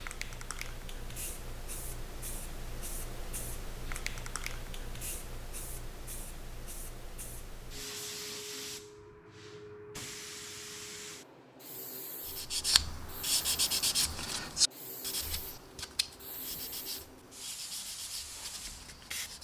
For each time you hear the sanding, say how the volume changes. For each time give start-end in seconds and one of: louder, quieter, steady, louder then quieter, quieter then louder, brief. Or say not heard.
12.2-19.4 quieter.